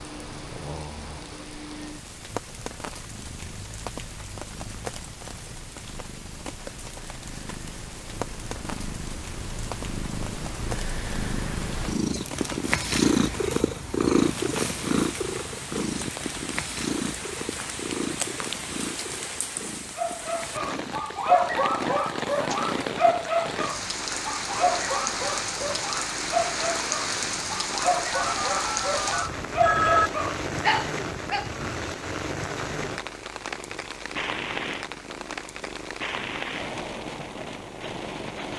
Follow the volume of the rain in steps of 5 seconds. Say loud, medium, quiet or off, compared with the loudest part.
medium, medium, medium, medium, loud, loud, loud, medium.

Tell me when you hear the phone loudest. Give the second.
30 s.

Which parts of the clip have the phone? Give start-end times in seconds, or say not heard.
28.1-30.1.